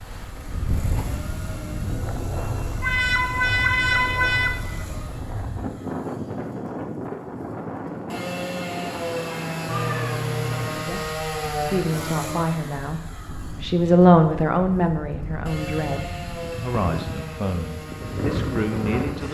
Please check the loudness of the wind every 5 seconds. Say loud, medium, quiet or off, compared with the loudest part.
loud, loud, medium, loud.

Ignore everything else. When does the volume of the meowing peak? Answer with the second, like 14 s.
4 s.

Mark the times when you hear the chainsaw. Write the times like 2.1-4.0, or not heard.
0.0-19.2.